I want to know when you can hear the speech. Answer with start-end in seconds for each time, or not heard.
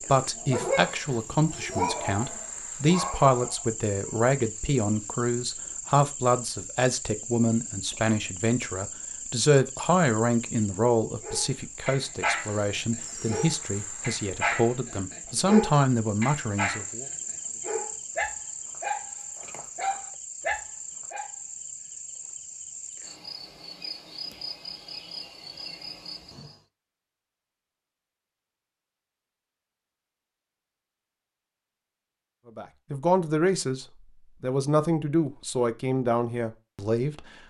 0.1-17.1, 32.5-37.2.